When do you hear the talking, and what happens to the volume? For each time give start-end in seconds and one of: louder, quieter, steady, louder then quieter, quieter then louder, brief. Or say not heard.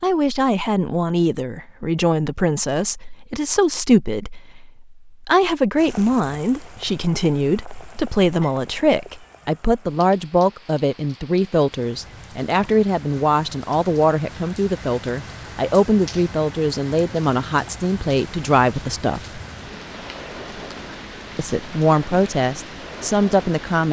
0.0-19.4 steady
21.4-23.8 brief.